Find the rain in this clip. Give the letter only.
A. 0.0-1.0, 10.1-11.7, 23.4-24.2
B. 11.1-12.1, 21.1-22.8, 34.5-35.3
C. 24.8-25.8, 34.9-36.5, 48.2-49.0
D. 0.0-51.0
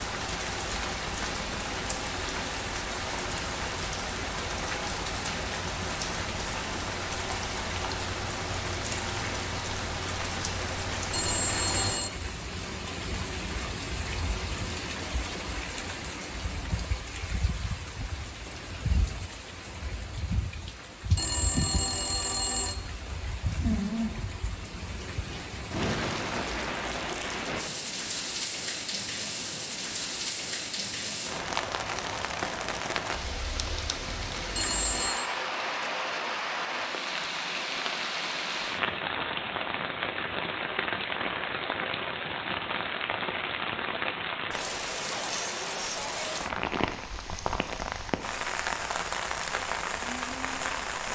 D.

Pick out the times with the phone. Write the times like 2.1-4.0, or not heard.
11.1-12.1, 21.1-22.8, 34.5-35.3.